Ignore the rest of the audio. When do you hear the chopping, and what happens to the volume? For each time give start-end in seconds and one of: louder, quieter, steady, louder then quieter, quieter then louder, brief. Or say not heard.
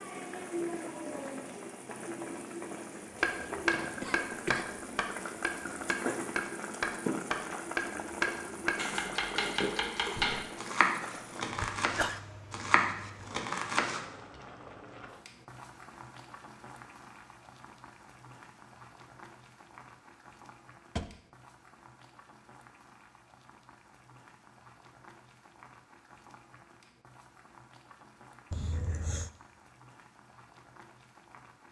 3.2-14.0 steady.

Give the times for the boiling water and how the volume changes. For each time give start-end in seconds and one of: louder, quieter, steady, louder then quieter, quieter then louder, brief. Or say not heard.
0.0-31.6 quieter.